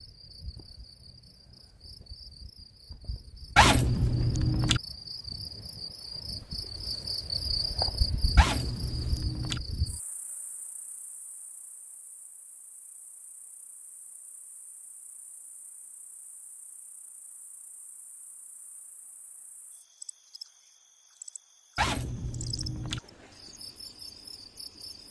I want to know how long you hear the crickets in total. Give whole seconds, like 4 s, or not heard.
25 s.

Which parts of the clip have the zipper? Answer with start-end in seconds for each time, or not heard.
3.5-4.8, 8.3-9.6, 21.8-23.0.